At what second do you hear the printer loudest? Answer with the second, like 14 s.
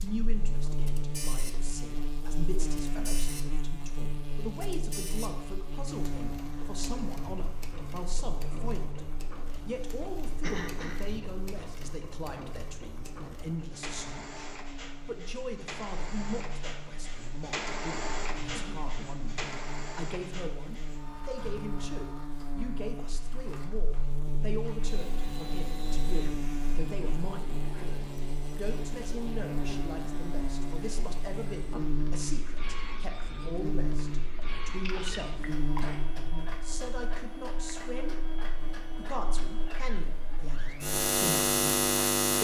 18 s.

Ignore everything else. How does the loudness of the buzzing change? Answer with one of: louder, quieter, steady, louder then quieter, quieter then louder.
quieter then louder.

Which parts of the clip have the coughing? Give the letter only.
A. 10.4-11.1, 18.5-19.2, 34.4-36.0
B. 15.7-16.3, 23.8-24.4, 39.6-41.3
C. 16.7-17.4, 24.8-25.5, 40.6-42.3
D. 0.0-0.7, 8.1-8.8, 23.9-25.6
A.